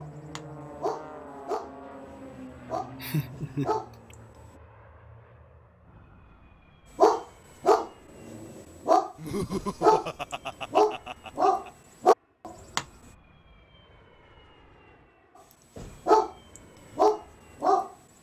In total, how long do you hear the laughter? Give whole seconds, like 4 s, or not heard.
4 s.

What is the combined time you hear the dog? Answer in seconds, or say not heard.
11 s.